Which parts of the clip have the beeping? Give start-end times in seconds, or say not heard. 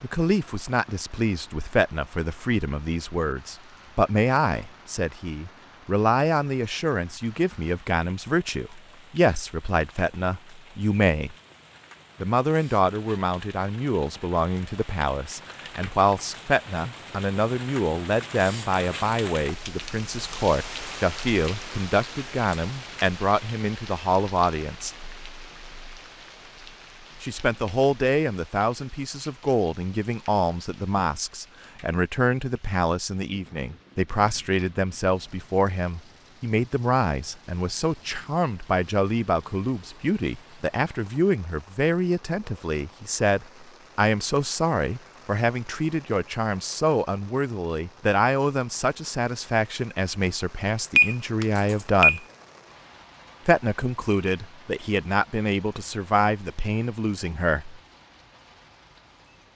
51.0-52.2.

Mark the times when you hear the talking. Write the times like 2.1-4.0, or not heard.
0.0-11.3, 12.2-24.9, 27.2-52.2, 53.5-57.8.